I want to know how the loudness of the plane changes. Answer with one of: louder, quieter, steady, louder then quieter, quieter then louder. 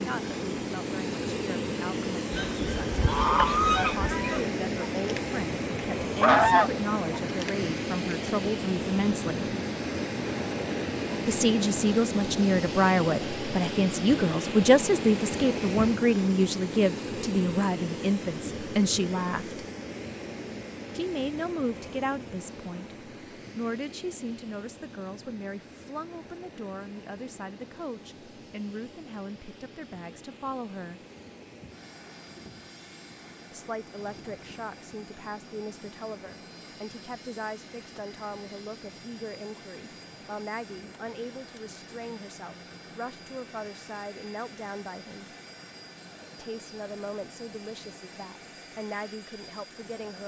quieter.